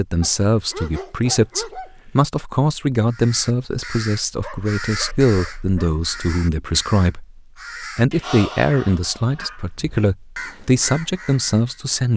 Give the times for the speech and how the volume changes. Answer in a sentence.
The speech can be heard from 0.0 to 12.1 s, at a steady volume.